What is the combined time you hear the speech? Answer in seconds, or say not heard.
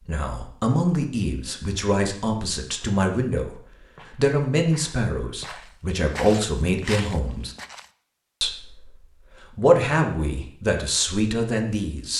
11 s.